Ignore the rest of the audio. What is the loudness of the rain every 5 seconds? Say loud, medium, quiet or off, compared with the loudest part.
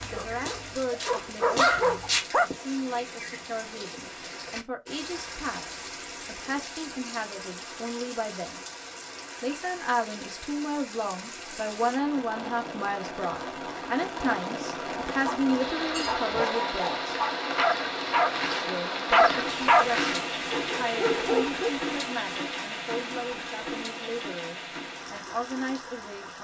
medium, medium, medium, loud, loud, medium.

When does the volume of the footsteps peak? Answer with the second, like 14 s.
2 s.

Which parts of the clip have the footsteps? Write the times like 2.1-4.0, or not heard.
0.0-2.2.